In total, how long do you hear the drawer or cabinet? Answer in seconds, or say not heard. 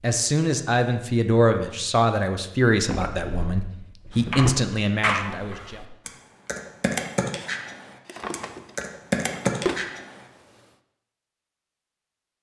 4 s.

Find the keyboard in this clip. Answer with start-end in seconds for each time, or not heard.
4.1-10.2.